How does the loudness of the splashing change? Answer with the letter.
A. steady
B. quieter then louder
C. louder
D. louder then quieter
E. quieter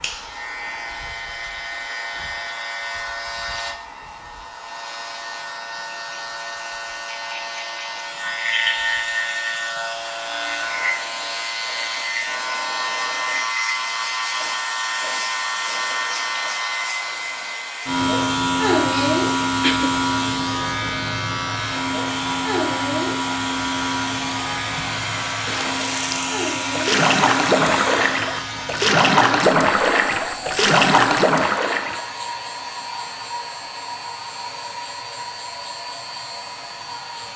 C.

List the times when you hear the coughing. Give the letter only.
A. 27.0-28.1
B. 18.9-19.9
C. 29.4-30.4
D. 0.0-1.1
B.